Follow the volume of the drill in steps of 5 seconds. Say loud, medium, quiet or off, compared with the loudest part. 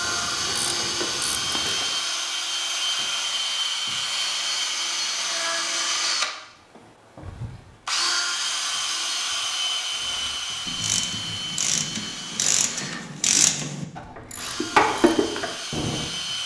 loud, loud, medium, medium.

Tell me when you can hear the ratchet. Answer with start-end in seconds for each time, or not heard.
0.0-1.9, 10.0-16.1.